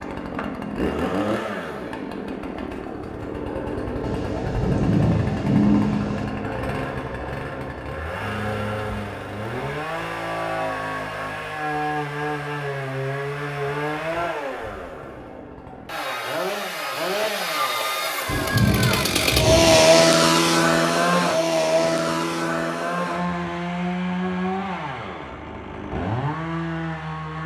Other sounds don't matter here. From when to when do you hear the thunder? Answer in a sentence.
The thunder can be heard from 4.0 to 6.2 s and from 18.2 to 19.8 s.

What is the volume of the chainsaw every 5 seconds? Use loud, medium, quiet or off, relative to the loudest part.
medium, medium, medium, loud, loud, medium.